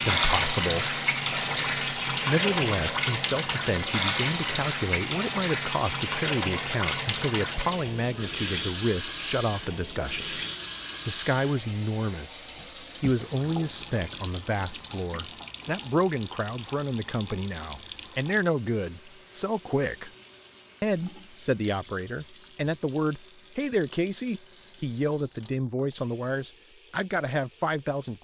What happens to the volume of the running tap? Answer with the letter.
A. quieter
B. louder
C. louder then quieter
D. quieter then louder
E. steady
A.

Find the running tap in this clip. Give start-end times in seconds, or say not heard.
0.0-28.1.